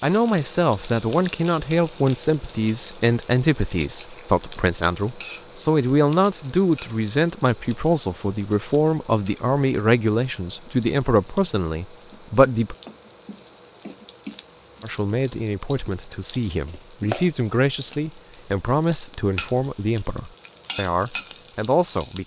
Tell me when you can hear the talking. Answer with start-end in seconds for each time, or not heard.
0.0-12.8, 14.8-22.2.